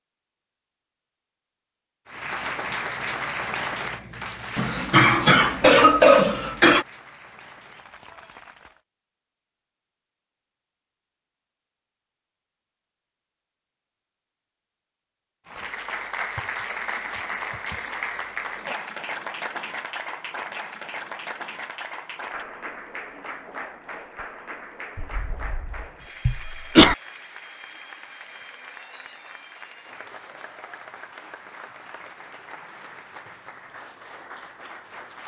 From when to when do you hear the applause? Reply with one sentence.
You can hear the applause from 2.0 to 8.8 s and from 15.4 to 35.2 s.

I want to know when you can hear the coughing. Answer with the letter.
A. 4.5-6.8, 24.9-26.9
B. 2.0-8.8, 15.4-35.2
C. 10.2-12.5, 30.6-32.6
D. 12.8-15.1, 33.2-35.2
A.